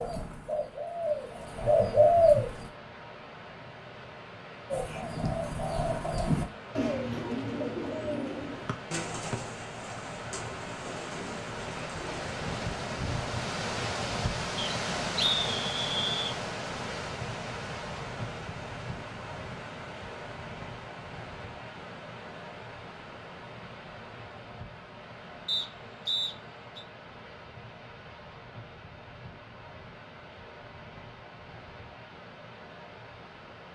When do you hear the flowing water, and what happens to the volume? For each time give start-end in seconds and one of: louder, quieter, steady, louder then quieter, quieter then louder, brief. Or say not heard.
0.1-33.7 louder then quieter.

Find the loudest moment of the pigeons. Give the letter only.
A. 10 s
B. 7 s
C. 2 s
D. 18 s
C.